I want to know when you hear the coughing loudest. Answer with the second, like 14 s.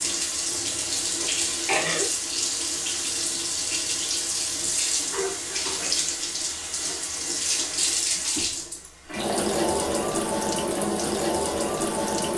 2 s.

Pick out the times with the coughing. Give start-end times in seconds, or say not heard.
0.5-2.1.